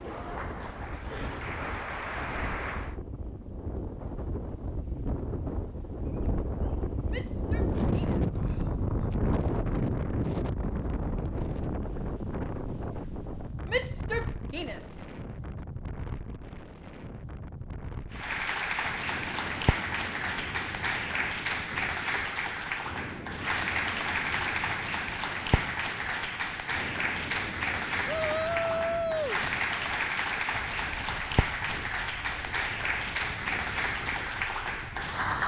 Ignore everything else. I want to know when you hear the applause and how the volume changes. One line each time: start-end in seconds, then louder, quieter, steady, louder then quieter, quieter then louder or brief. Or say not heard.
0.0-3.0 brief
18.1-35.4 steady.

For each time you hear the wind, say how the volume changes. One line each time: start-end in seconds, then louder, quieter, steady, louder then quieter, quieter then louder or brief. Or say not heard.
0.0-35.4 louder then quieter.